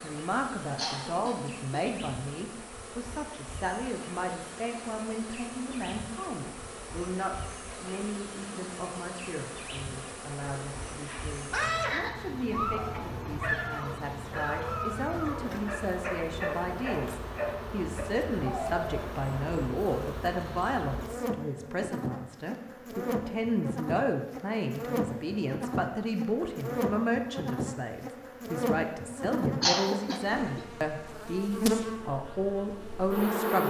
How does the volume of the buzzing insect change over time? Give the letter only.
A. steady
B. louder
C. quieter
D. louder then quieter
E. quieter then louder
B.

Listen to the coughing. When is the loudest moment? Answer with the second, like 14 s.
30 s.